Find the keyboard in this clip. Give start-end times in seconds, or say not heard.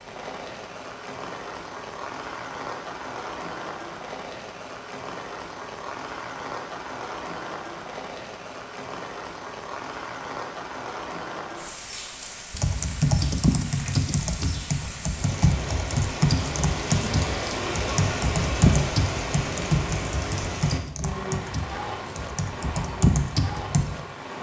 12.5-23.9.